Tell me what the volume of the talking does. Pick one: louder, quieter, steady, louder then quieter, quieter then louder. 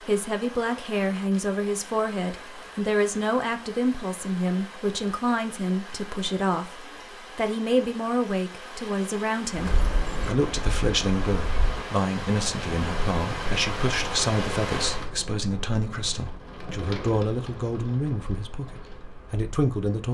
steady.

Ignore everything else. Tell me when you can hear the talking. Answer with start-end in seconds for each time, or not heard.
0.1-20.1.